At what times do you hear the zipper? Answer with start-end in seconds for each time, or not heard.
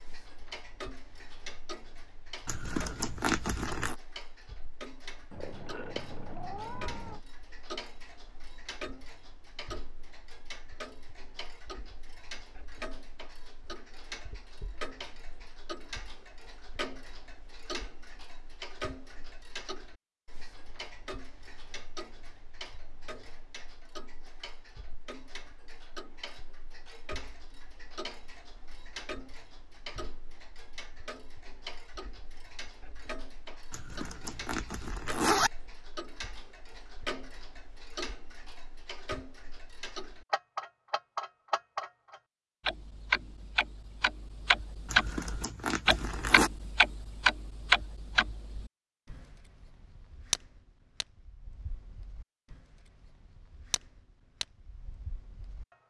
2.5-4.0, 33.7-35.5, 44.9-46.5.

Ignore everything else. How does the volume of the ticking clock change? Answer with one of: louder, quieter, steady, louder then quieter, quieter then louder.
louder.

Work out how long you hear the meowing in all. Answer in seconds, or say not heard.
2 s.